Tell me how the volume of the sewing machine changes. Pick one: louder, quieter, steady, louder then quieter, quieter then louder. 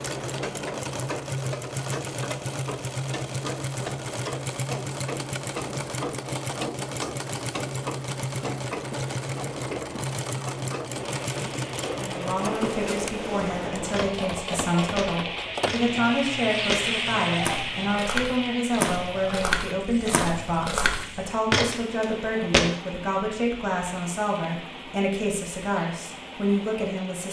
quieter.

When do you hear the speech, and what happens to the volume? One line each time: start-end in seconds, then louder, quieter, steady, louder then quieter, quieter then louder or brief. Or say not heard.
11.9-27.2 steady.